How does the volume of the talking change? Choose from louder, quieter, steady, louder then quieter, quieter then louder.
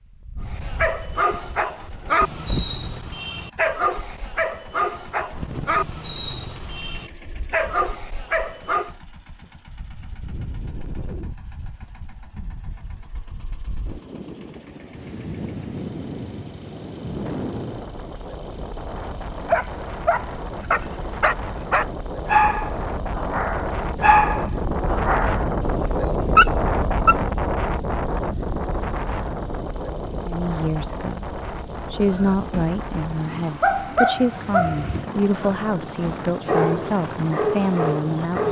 steady.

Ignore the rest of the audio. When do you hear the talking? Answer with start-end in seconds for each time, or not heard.
30.2-38.4.